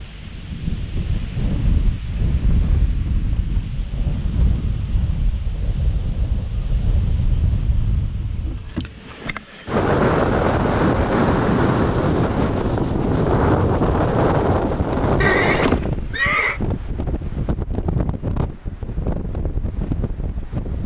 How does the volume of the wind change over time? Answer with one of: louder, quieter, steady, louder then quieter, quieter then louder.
louder then quieter.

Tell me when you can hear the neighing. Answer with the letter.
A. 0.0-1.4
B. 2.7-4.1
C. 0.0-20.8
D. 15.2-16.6
D.